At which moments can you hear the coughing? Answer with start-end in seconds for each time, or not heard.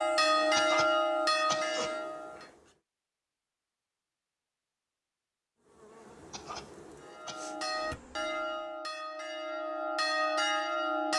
0.6-1.9, 6.3-7.5.